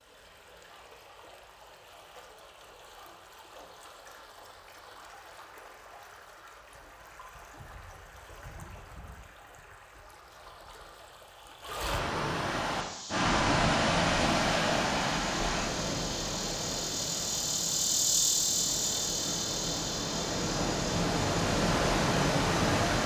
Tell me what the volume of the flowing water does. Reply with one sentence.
The volume of the flowing water goes up.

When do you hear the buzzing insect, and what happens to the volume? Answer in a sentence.
You can hear the buzzing insect from 12.7 to 23.0 s, getting louder then quieter.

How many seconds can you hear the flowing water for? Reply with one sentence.
The flowing water can be heard for 23 seconds in total.